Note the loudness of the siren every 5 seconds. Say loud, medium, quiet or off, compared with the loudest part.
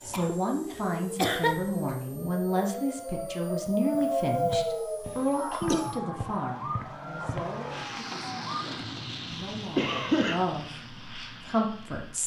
loud, medium, off.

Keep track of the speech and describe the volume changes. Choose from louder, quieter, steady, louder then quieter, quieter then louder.
quieter then louder.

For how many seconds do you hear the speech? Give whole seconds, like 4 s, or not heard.
12 s.